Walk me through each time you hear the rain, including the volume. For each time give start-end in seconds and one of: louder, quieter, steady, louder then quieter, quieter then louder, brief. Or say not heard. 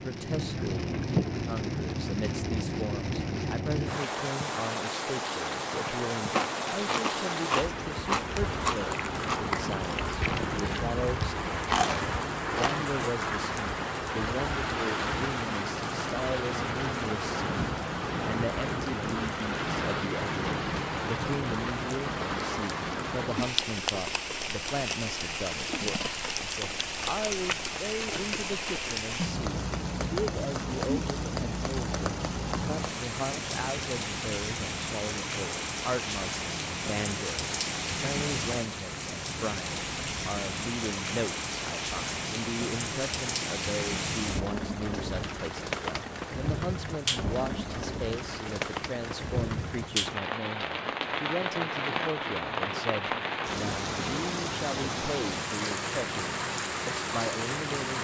0.0-57.9 steady.